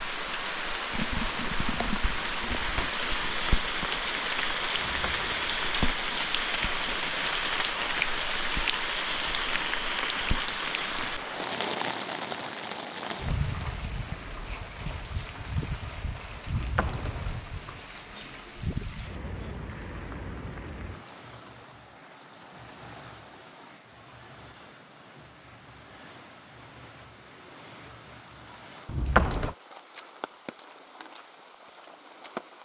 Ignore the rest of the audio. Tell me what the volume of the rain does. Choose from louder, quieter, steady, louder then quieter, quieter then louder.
quieter.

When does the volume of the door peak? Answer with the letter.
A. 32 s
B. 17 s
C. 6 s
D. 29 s
D.